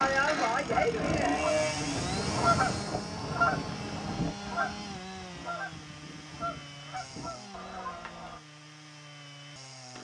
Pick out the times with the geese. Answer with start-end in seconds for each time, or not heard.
0.6-8.4.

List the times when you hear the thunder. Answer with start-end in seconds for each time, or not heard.
1.8-4.3.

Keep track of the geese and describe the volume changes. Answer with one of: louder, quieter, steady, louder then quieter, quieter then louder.
louder then quieter.